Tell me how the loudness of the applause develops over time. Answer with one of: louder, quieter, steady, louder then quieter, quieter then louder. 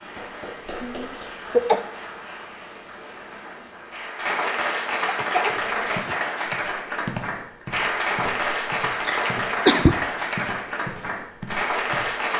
louder.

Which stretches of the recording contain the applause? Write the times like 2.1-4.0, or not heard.
0.0-12.3.